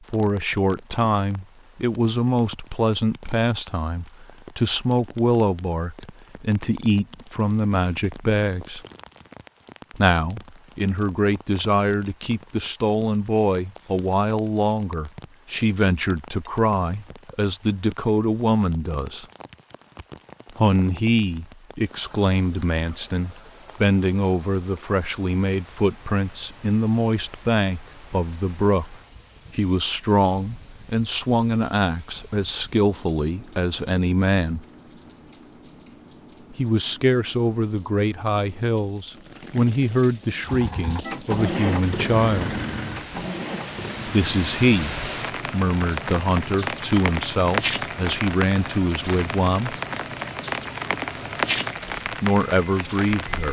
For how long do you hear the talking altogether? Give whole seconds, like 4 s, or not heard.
45 s.